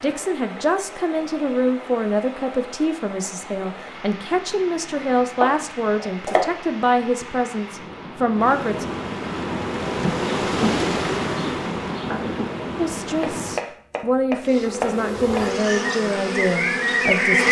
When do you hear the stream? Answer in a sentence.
You can hear the stream from 0.0 to 13.7 s.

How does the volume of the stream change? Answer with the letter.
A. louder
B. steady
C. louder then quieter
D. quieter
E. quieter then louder
A.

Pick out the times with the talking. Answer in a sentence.
You can hear the talking from 0.0 to 8.8 s and from 12.8 to 17.4 s.